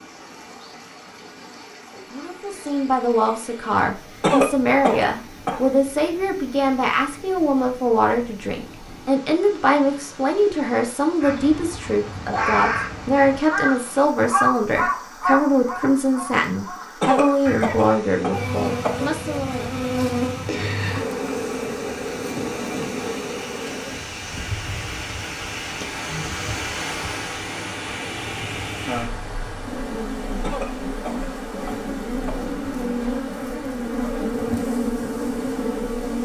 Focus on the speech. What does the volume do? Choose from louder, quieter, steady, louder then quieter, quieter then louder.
steady.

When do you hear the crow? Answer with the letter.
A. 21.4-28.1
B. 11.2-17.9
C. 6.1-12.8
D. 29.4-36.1
B.